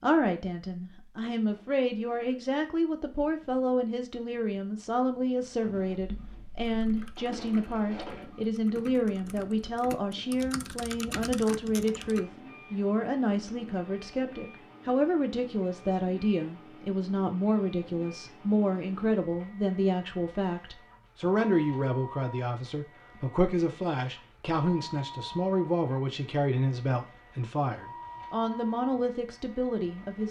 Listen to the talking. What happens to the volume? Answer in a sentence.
The loudness of the talking stays about the same.